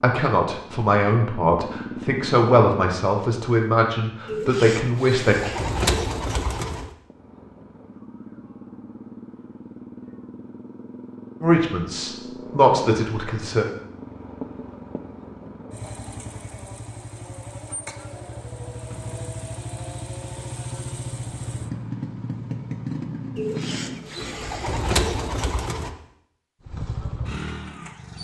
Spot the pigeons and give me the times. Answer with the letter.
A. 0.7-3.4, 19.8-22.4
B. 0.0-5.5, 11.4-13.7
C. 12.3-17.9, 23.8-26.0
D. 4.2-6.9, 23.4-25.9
D.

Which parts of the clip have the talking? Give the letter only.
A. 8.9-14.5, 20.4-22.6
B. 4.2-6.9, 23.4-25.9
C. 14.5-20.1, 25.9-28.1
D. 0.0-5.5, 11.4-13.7
D.